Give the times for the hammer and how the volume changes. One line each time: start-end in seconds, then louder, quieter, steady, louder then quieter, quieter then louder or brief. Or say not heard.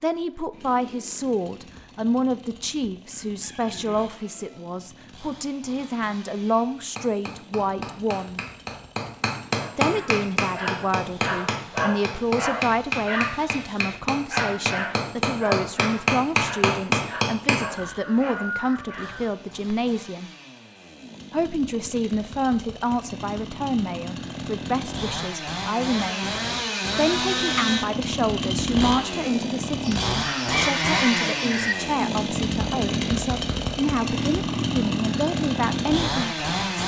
6.8-17.7 louder.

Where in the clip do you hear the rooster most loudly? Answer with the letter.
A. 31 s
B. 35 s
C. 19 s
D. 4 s
A.